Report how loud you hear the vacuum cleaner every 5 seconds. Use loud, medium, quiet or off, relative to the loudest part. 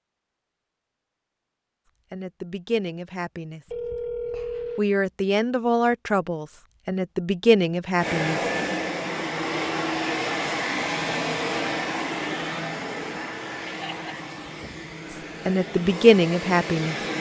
off, loud, loud, medium.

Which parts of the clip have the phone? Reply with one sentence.
The phone can be heard from 3.6 to 4.8 s.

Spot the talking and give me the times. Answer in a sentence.
You can hear the talking from 2.1 to 3.6 s, from 4.8 to 8.4 s and from 15.4 to 16.9 s.